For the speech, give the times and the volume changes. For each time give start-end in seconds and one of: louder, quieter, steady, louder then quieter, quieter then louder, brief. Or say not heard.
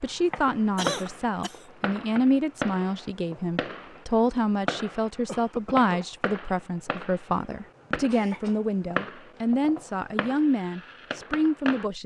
0.0-12.0 steady.